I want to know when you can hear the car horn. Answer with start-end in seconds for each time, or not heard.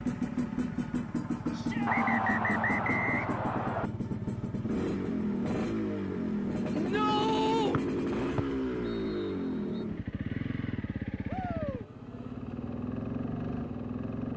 not heard.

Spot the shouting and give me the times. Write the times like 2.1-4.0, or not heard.
1.5-2.2, 6.7-7.8, 11.2-11.8.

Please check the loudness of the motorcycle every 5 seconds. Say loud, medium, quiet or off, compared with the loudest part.
loud, loud, medium.